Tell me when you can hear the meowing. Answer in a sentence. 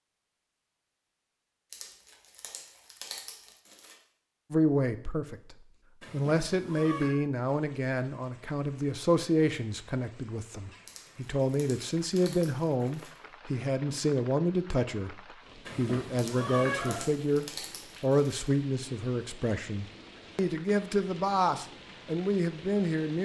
You can hear the meowing from 6.0 to 7.2 s and from 15.7 to 17.1 s.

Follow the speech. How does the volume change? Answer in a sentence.
The volume of the speech stays about the same.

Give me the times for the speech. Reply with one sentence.
You can hear the speech from 4.5 to 23.2 s.